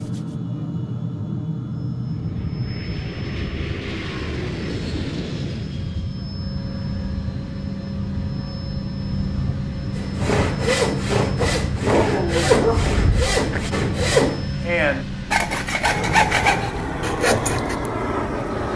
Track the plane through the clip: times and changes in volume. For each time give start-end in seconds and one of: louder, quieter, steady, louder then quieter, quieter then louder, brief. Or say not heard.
0.0-18.7 steady.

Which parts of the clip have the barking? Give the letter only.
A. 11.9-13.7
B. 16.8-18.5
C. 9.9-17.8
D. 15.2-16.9
A.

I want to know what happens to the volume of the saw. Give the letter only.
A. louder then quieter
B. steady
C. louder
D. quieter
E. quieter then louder
B.